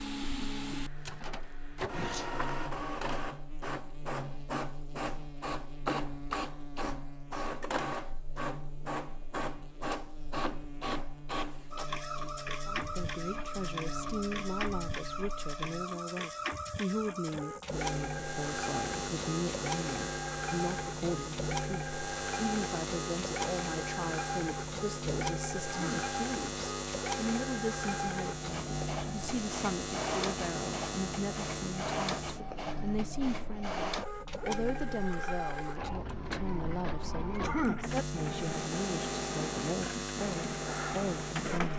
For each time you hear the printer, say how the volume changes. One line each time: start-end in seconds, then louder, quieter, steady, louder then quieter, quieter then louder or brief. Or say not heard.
0.0-41.7 steady.